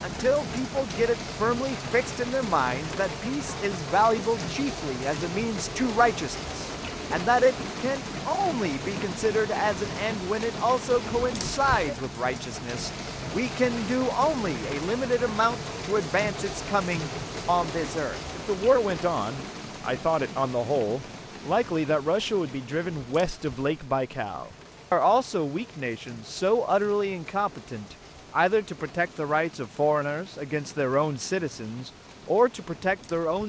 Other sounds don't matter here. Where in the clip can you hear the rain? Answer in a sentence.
You can hear the rain from 0.0 to 33.4 s.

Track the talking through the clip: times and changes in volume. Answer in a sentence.
The talking can be heard from 0.0 to 33.4 s, at a steady volume.